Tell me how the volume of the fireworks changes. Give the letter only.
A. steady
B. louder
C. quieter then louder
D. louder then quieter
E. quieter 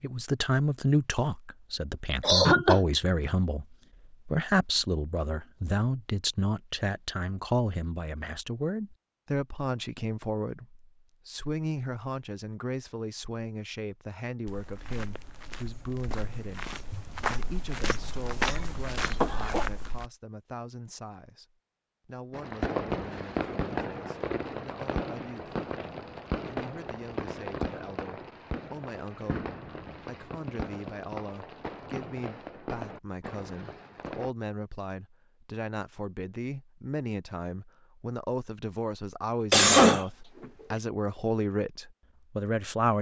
E.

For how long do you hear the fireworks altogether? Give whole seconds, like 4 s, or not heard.
12 s.